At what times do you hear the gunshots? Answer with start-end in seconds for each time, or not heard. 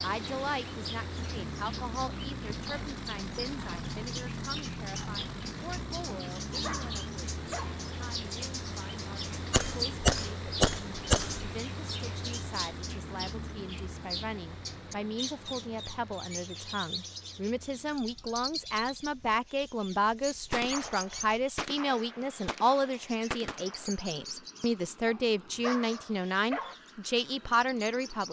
9.5-11.5, 20.5-23.9.